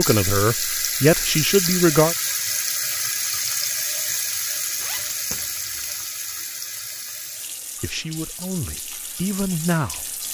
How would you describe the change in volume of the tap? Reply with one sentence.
The volume of the tap goes down.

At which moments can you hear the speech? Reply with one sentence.
You can hear the speech from 0.0 to 2.1 s and from 7.8 to 10.2 s.